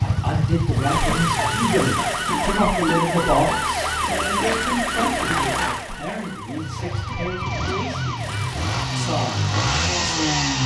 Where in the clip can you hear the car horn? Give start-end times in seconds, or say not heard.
not heard.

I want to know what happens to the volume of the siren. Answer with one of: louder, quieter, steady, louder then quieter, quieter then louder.
quieter.